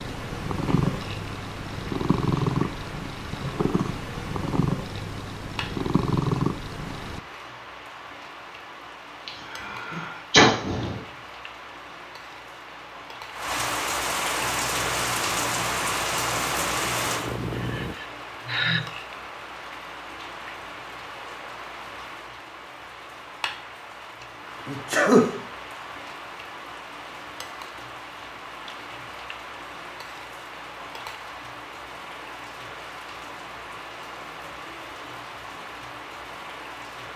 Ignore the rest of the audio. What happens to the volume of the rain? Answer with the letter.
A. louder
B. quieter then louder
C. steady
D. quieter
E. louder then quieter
E.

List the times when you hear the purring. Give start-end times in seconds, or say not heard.
0.0-7.2, 14.3-17.9.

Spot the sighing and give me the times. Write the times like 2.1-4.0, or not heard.
16.8-18.9.